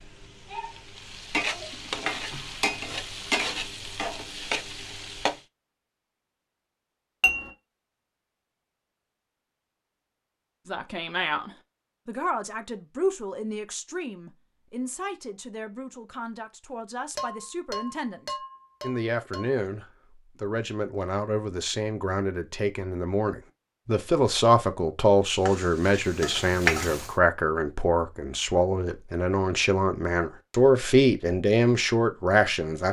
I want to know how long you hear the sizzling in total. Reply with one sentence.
The sizzling can be heard for 7 seconds in total.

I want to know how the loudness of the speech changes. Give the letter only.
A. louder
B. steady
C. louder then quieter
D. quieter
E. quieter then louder
A.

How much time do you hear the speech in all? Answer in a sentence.
The speech can be heard for 22 seconds in total.